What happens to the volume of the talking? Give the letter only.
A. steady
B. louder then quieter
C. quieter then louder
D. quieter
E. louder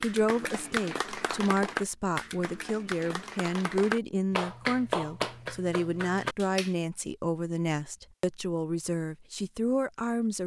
A.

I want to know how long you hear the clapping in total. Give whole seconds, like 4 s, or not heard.
7 s.